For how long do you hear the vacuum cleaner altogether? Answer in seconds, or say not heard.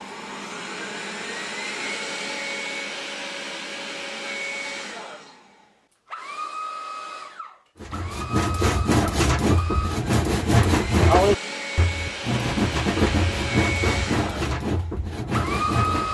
16 s.